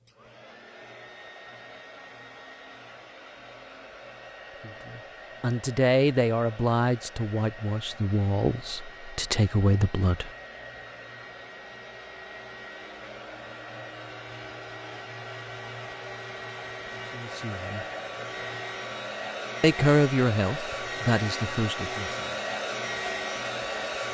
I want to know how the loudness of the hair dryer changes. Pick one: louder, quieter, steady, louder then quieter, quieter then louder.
louder.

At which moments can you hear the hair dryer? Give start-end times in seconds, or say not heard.
0.0-24.0.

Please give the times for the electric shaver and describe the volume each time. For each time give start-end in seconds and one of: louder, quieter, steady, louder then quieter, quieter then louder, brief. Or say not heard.
not heard.